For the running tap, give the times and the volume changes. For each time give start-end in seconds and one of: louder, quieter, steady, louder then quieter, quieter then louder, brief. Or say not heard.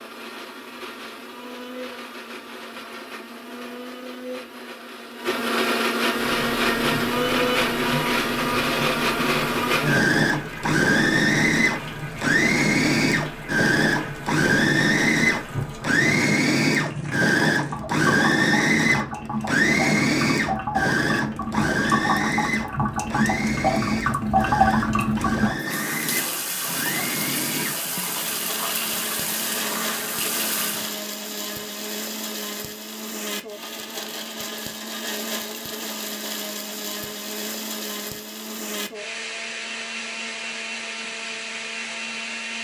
6.1-30.9 louder then quieter.